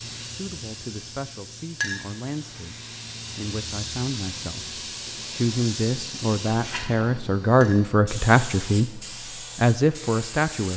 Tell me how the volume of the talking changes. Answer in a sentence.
The volume of the talking goes up.